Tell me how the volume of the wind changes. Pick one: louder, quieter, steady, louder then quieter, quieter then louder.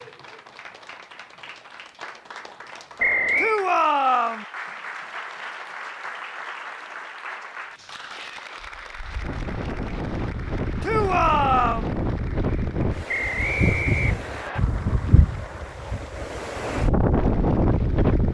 louder.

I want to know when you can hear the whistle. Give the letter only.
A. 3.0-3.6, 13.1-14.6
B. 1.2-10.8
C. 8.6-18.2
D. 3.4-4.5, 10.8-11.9
A.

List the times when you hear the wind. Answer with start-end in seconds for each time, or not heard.
8.6-18.2.